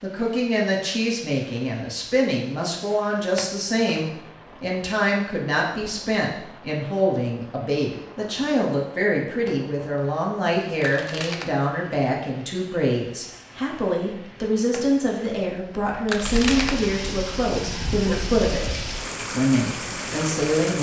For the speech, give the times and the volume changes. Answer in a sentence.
You can hear the speech from 0.0 to 20.7 s, at a steady volume.